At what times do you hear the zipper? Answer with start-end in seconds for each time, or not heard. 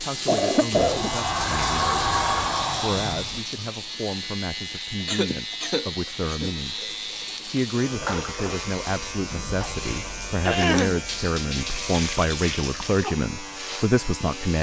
not heard.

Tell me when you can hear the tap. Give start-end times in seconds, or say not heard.
0.0-13.2.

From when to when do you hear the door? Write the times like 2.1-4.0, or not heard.
0.7-3.5.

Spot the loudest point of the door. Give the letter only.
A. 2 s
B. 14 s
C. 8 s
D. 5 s
A.